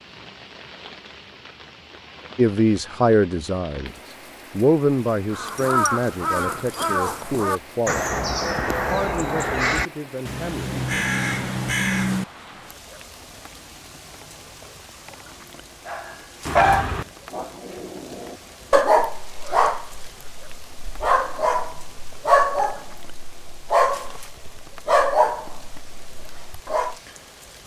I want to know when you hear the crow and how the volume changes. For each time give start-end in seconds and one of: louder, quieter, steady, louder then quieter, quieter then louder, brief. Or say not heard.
5.3-12.2 steady.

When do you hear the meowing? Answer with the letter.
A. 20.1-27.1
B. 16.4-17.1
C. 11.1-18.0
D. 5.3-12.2
B.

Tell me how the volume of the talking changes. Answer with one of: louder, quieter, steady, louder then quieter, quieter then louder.
quieter.